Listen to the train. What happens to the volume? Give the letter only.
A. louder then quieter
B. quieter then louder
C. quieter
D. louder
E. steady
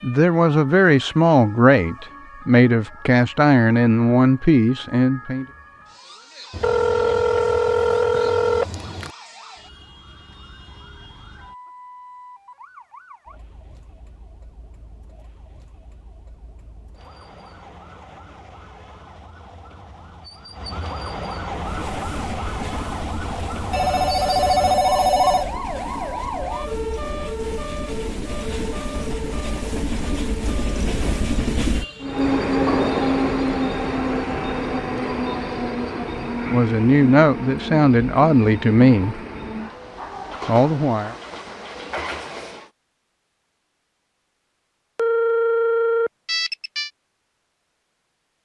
A.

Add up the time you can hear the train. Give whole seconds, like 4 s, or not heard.
21 s.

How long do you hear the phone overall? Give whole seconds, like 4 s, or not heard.
6 s.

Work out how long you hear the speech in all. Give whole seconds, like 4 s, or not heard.
9 s.